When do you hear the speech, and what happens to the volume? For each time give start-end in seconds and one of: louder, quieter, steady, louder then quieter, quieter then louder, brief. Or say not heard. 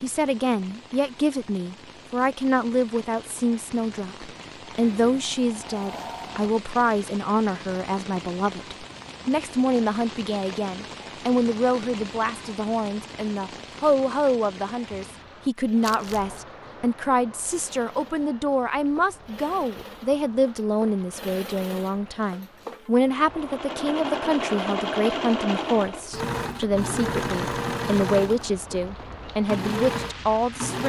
0.0-30.8 steady.